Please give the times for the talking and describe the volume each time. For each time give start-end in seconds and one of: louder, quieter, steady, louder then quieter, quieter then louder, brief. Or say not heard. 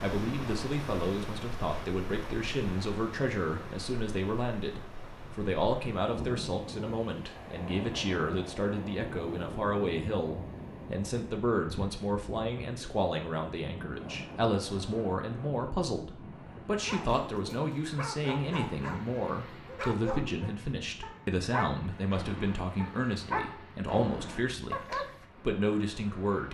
0.0-26.4 steady.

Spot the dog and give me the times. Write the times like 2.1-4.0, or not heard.
16.8-25.2.